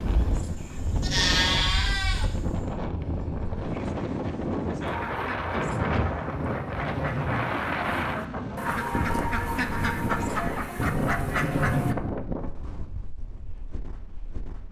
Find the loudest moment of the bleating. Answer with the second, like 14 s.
1 s.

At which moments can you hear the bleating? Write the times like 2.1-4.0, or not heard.
0.0-2.6.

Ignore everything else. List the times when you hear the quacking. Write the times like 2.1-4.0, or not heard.
4.8-11.9.